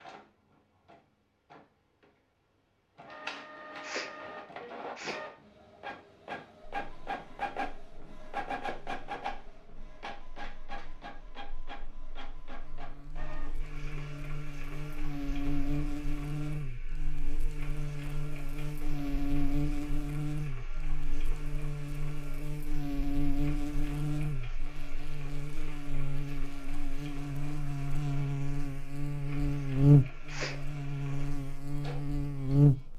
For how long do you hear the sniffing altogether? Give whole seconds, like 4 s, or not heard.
2 s.